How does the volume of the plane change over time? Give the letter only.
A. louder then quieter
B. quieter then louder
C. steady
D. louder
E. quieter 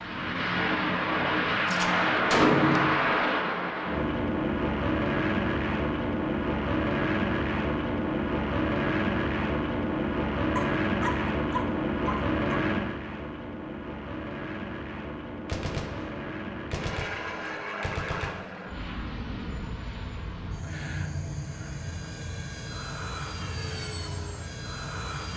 E.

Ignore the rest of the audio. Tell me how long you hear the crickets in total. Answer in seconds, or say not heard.
not heard.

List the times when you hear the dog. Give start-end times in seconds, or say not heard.
10.6-12.6.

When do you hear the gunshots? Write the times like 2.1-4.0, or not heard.
1.6-3.2, 15.4-18.5.